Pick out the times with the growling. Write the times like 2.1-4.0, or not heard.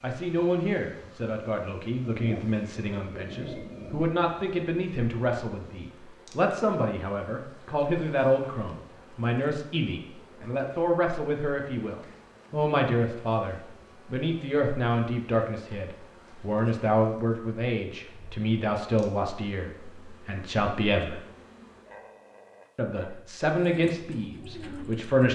2.1-4.0, 21.9-23.1.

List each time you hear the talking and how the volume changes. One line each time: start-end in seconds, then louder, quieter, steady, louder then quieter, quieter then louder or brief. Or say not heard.
0.0-21.2 steady
22.8-25.2 brief.